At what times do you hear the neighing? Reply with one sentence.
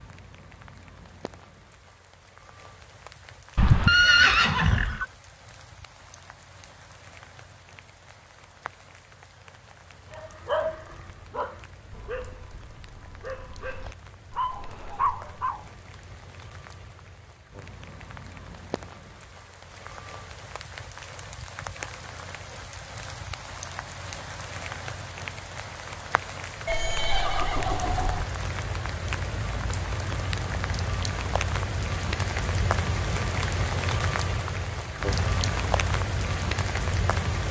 The neighing can be heard from 3.5 to 5.0 s and from 26.6 to 28.2 s.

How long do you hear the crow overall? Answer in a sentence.
The crow can't be heard in this clip.